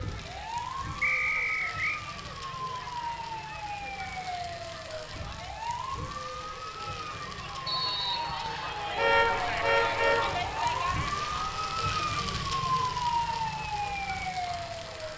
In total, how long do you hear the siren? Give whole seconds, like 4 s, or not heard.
15 s.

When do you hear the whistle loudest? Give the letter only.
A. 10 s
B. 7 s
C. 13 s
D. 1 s
D.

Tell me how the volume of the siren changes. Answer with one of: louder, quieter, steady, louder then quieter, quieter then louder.
louder.